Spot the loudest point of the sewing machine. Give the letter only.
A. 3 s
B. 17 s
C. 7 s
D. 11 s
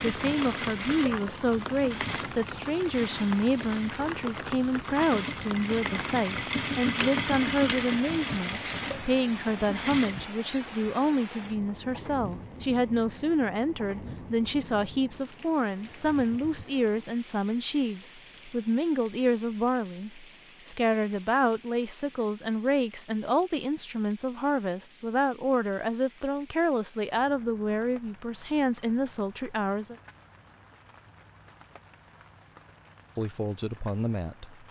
C.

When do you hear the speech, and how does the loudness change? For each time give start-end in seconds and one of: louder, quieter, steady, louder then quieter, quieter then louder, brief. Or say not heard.
0.1-29.9 steady
33.1-34.6 brief.